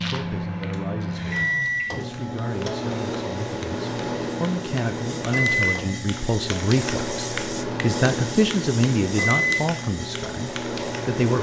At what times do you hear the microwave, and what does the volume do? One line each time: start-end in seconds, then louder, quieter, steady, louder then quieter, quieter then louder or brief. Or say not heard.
0.0-11.3 steady.